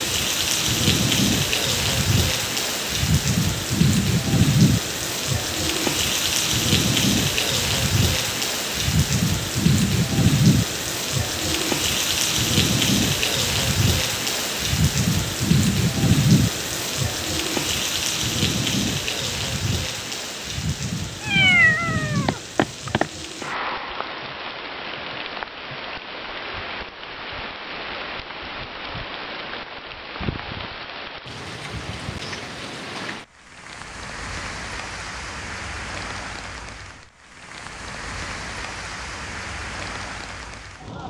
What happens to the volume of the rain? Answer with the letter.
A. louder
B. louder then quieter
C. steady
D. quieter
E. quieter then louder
D.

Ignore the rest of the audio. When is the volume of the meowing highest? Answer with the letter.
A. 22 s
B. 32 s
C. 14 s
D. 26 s
A.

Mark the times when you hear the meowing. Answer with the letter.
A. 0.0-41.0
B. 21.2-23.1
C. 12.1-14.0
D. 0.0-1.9
B.